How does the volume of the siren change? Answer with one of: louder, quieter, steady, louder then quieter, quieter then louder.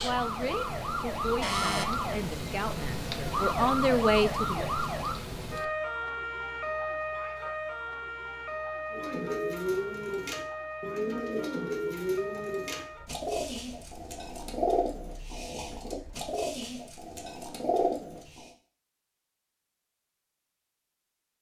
quieter.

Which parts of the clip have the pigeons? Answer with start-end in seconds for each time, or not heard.
8.9-18.5.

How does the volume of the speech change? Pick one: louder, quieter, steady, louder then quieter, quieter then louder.
louder.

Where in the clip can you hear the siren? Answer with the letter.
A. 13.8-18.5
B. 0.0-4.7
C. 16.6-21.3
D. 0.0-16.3
D.